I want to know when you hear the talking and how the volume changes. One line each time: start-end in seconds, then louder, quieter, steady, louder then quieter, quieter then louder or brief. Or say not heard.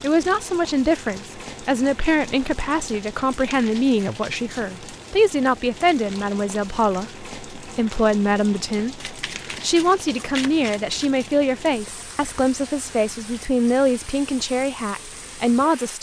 0.0-15.9 steady.